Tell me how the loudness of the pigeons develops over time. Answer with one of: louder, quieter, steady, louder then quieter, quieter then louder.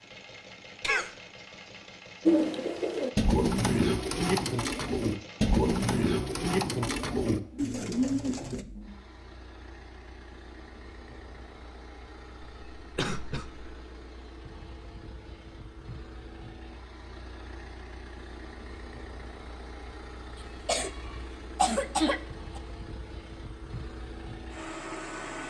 steady.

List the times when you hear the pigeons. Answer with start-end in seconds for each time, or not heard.
2.2-8.7.